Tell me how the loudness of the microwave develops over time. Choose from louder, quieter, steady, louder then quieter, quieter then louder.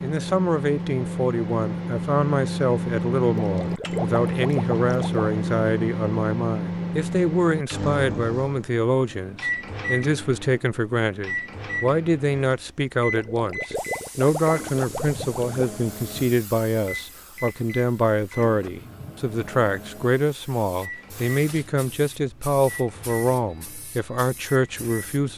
quieter.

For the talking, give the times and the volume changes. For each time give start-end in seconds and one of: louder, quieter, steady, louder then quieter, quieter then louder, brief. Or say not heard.
0.0-25.3 steady.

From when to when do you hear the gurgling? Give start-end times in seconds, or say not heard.
3.4-5.2, 13.1-15.7.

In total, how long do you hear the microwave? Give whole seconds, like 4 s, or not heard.
25 s.